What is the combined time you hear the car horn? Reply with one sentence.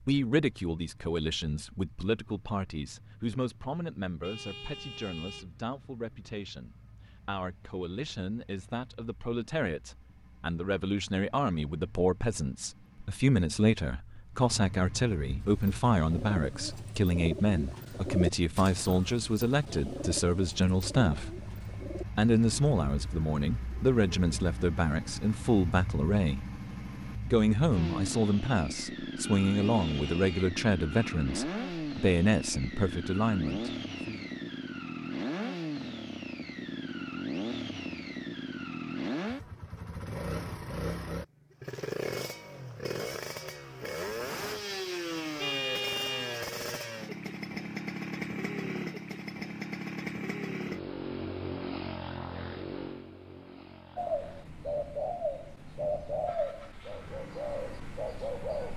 The car horn can be heard for 4 seconds in total.